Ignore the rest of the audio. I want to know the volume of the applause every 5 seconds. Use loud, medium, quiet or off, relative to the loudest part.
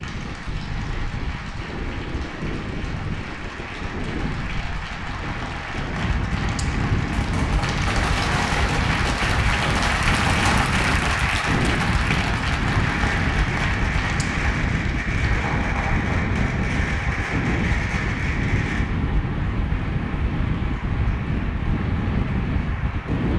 medium, loud, loud, medium, medium.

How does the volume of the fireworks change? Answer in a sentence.
The volume of the fireworks stays about the same.